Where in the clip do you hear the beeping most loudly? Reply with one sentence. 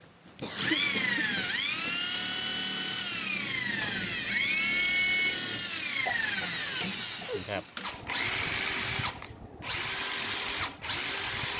The loudest moment of the beeping is at 5 seconds.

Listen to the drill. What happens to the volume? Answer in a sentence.
The volume of the drill stays about the same.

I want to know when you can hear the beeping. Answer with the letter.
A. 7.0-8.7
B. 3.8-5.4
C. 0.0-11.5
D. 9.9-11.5
B.